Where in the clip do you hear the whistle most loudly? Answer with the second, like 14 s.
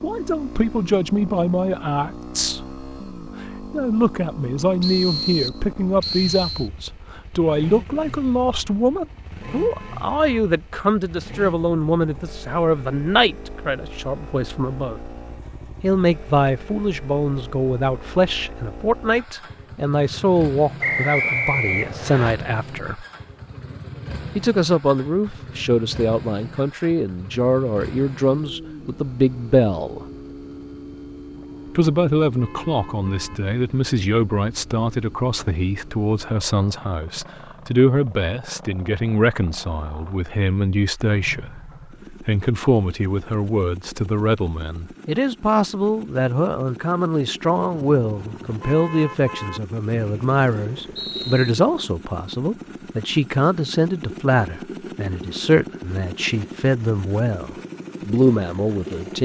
21 s.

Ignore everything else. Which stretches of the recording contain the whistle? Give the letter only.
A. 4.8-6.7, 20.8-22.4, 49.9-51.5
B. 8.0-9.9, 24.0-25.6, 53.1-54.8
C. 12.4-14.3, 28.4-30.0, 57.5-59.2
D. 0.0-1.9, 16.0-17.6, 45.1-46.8
A.